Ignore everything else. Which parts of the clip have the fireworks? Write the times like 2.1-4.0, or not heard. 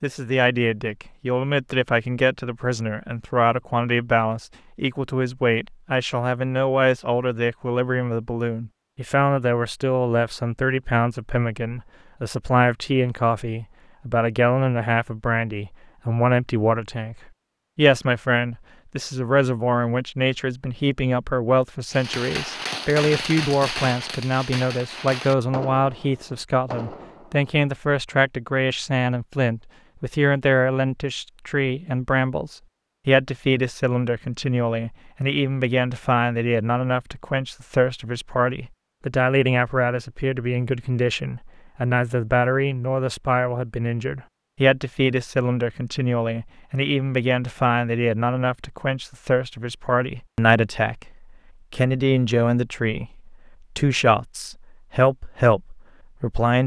21.9-27.5.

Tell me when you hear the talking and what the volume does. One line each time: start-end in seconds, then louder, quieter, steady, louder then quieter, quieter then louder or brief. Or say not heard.
0.0-17.1 steady
17.8-56.6 steady.